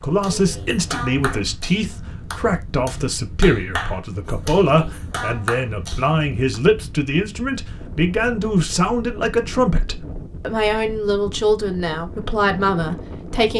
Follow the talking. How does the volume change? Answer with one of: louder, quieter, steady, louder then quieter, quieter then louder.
steady.